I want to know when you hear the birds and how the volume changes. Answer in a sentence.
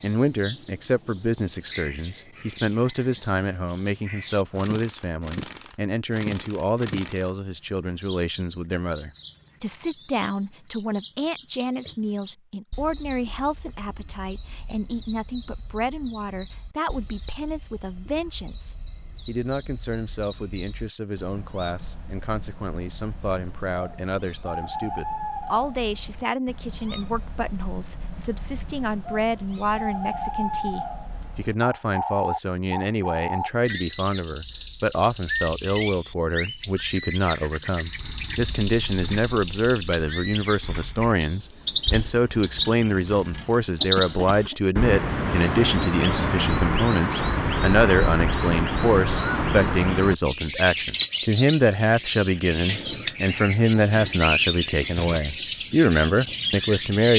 The birds can be heard from 0.0 to 57.1 s, getting quieter then louder.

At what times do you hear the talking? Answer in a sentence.
The talking can be heard from 0.0 to 57.1 s.